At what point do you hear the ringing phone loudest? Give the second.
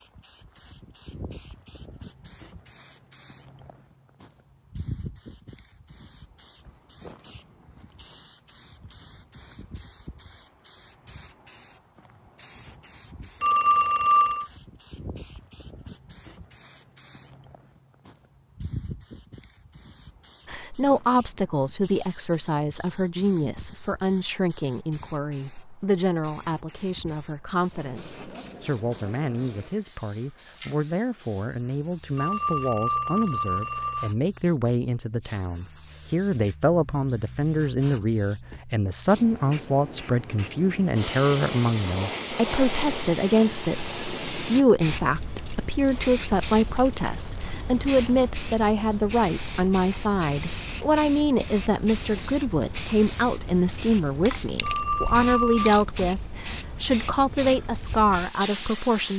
14 s.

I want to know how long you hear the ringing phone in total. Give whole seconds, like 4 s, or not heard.
4 s.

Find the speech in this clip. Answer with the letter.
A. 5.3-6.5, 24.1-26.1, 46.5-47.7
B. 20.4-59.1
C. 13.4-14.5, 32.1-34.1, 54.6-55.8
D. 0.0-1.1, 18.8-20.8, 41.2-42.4
B.